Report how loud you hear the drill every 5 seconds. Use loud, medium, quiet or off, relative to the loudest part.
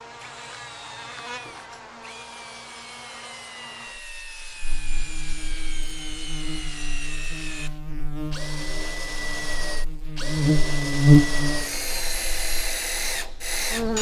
quiet, medium, loud.